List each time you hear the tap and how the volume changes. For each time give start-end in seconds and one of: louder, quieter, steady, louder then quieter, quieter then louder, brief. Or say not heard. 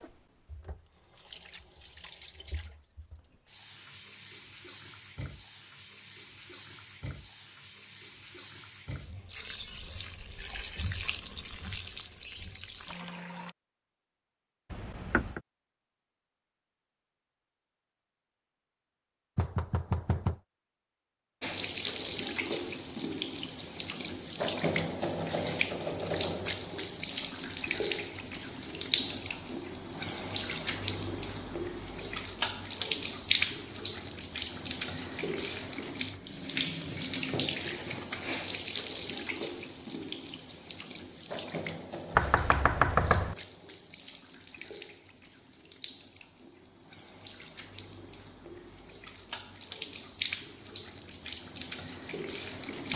0.0-13.6 louder
21.4-52.9 quieter.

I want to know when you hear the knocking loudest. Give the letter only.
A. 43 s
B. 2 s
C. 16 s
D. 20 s
A.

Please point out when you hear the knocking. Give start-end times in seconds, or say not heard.
14.7-15.4, 19.4-20.4, 42.1-43.4.